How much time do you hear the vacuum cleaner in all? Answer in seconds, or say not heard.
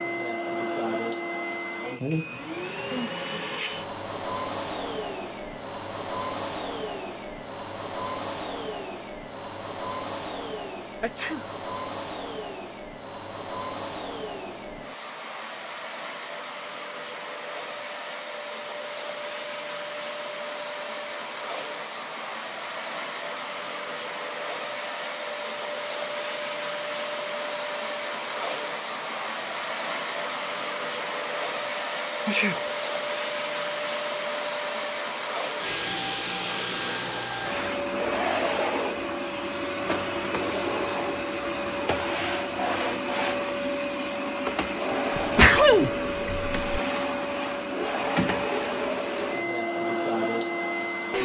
51 s.